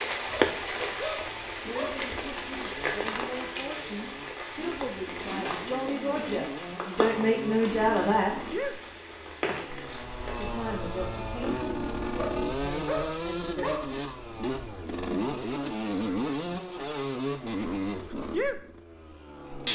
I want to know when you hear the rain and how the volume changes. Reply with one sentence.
The rain can be heard from 0.0 to 10.5 s, getting quieter.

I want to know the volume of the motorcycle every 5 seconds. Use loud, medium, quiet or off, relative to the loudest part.
quiet, medium, loud, loud.